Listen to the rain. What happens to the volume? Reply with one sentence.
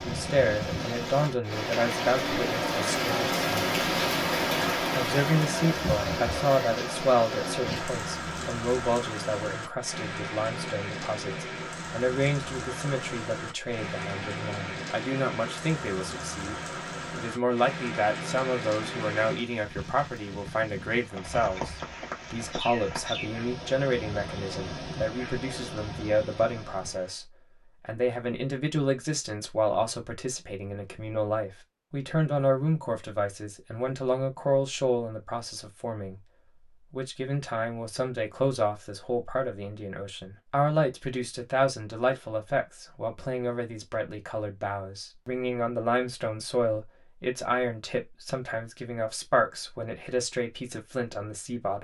The volume of the rain goes down.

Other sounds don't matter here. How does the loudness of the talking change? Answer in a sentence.
The loudness of the talking stays about the same.